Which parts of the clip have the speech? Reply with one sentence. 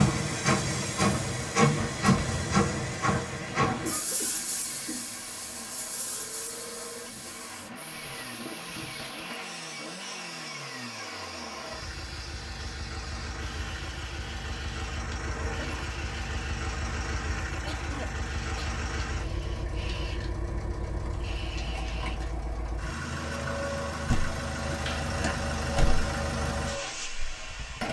The speech can't be heard in this clip.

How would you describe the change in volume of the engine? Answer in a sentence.
The loudness of the engine goes up.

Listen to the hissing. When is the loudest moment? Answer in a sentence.
The volume of the hissing peaks at 2 seconds.